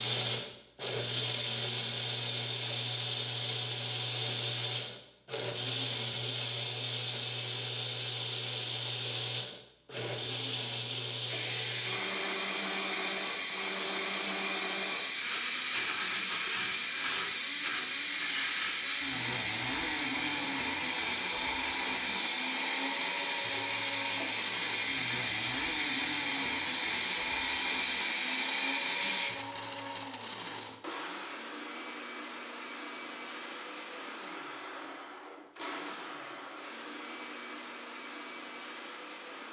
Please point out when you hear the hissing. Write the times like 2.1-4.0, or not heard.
11.2-29.3.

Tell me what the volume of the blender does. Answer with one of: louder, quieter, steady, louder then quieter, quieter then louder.
quieter.